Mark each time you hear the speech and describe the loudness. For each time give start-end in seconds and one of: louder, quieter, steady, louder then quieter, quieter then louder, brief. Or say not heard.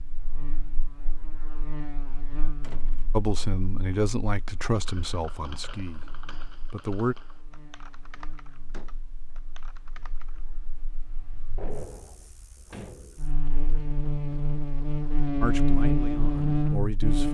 3.1-7.2 quieter
15.4-17.2 brief.